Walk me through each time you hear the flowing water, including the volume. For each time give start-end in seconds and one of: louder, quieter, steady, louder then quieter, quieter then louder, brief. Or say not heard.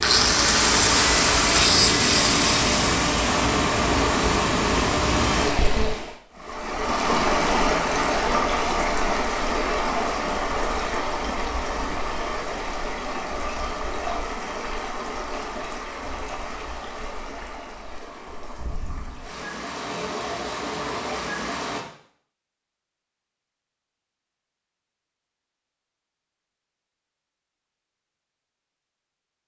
0.0-21.8 quieter.